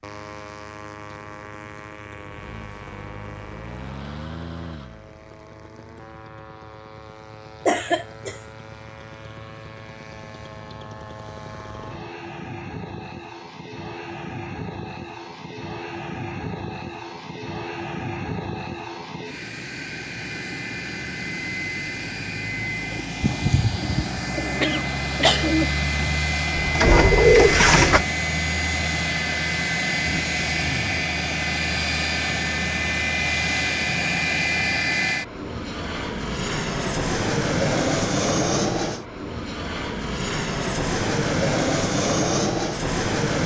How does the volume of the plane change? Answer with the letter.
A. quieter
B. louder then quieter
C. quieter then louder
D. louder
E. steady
D.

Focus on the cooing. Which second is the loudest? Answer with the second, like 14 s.
27 s.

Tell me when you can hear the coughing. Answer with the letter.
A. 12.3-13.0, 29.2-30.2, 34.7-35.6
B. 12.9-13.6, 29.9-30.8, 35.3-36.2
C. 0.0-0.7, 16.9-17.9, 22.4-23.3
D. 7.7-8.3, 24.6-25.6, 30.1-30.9
D.